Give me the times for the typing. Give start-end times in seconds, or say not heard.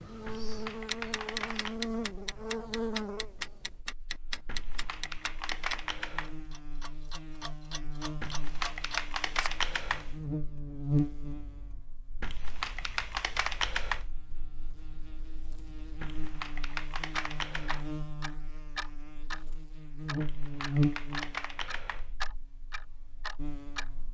0.2-1.8, 4.5-6.4, 8.2-10.2, 12.2-14.1, 16.0-17.9, 20.2-22.1.